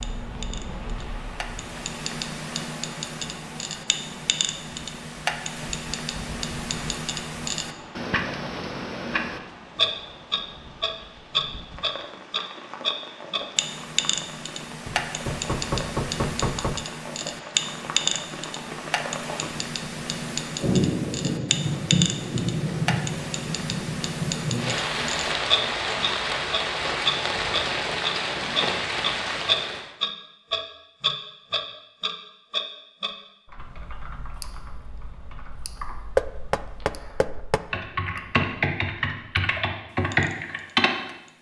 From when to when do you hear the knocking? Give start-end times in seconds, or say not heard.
14.8-16.9, 36.1-37.6.